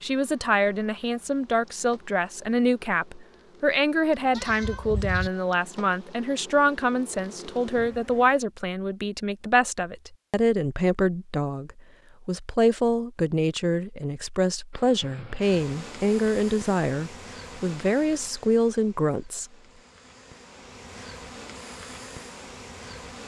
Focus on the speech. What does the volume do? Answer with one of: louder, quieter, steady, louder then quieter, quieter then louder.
steady.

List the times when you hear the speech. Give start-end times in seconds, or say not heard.
0.0-19.4.